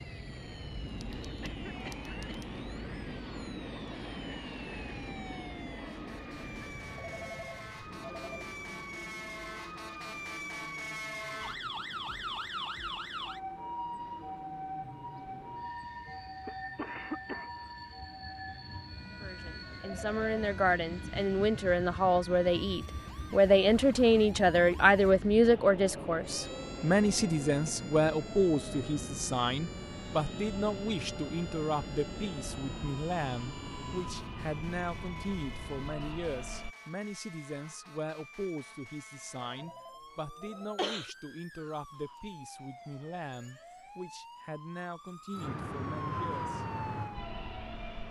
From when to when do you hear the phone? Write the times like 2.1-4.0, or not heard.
7.0-8.4, 19.8-20.3, 39.5-40.8.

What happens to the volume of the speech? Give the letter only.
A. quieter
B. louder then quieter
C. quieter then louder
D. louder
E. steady
A.